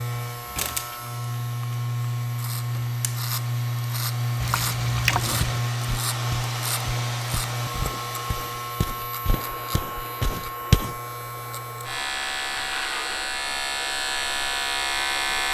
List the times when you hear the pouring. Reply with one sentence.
The pouring can be heard from 4.4 to 5.6 s.